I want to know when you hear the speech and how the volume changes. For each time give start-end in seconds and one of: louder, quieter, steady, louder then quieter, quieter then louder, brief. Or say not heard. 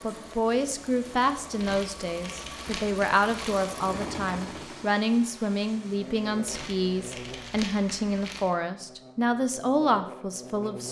0.0-10.8 steady.